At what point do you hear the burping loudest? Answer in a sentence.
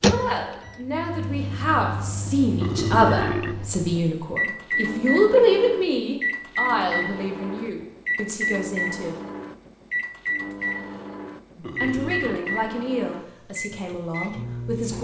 The volume of the burping peaks at 3 seconds.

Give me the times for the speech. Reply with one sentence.
You can hear the speech from 0.0 to 9.2 s and from 11.6 to 14.9 s.